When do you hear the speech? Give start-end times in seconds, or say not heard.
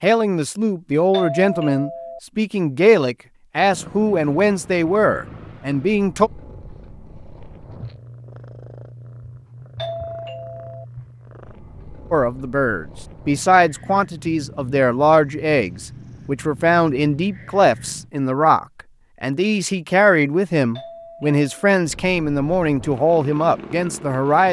0.0-6.3, 12.1-24.4.